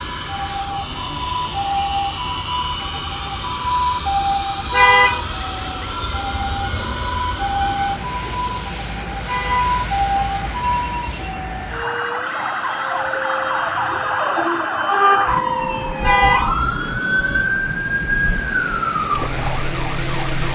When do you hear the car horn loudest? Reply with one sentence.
The volume of the car horn peaks at 5 seconds.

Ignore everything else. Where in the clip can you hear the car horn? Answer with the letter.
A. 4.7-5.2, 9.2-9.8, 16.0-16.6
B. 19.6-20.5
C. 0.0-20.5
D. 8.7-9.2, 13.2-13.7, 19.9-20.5
A.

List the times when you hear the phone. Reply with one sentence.
You can hear the phone from 10.6 to 11.5 s.